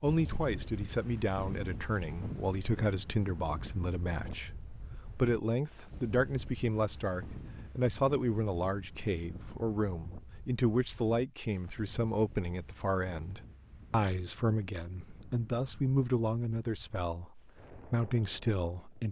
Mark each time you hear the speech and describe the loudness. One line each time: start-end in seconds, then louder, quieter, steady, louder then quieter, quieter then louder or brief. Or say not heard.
0.0-19.0 steady.